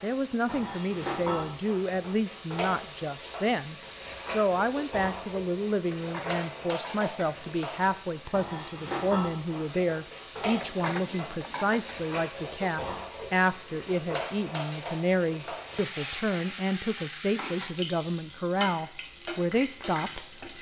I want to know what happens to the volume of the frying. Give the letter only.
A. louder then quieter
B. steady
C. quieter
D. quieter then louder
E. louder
B.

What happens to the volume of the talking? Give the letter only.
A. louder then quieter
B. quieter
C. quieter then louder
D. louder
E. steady
E.